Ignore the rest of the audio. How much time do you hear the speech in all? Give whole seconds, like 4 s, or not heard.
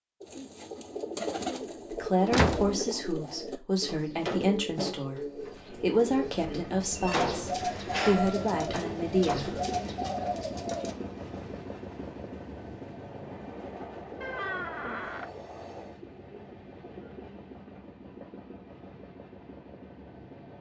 8 s.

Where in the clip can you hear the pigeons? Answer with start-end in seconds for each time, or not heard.
0.2-10.9.